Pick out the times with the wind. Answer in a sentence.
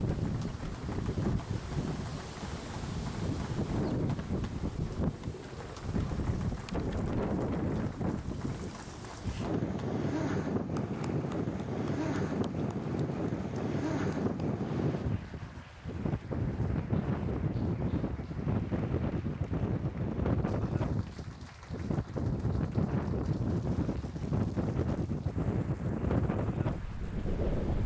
You can hear the wind from 0.0 to 27.8 s.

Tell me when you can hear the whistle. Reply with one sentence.
The whistle can't be heard in this clip.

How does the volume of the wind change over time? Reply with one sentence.
The volume of the wind stays about the same.